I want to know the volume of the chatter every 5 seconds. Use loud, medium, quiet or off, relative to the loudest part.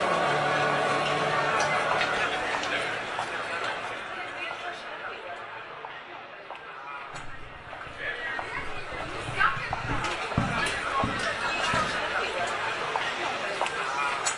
loud, medium, loud.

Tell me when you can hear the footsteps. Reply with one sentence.
You can hear the footsteps from 7.0 to 12.6 s.